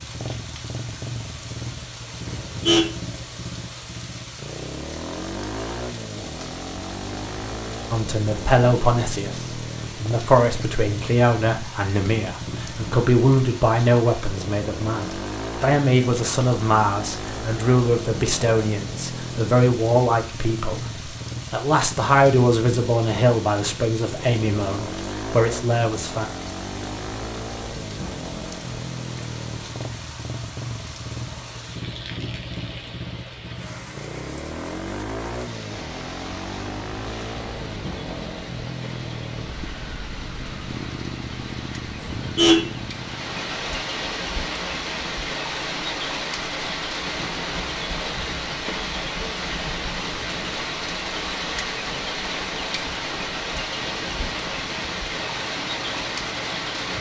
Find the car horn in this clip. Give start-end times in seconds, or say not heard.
2.2-2.9, 42.0-42.6.